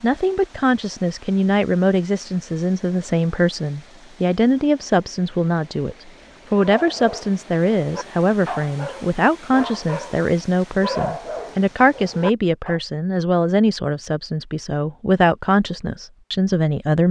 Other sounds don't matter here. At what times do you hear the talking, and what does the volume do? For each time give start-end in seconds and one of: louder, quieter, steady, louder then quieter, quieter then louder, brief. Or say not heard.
0.0-17.0 steady.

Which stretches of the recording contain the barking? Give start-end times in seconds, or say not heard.
6.7-12.8.